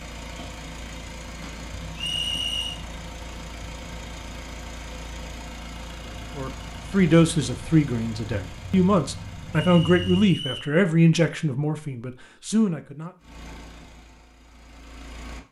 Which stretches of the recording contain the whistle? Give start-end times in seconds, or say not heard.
1.9-2.8, 9.6-10.8.